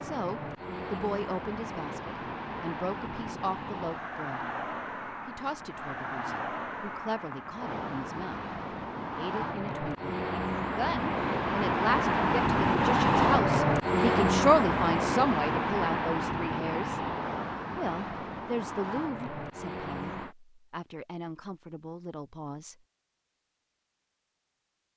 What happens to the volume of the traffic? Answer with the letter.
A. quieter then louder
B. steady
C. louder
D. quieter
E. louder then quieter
E.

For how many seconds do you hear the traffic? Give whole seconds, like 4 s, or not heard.
20 s.